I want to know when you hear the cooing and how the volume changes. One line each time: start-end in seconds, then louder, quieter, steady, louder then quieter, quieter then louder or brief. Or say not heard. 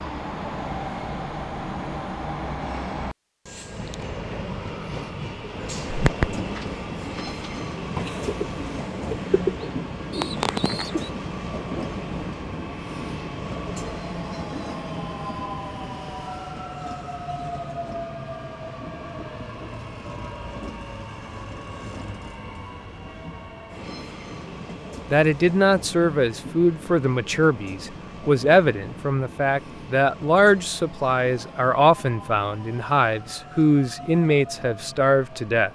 5.9-11.1 louder.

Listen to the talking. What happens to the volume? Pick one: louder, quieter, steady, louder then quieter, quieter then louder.
steady.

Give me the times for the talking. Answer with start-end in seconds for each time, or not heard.
25.1-35.7.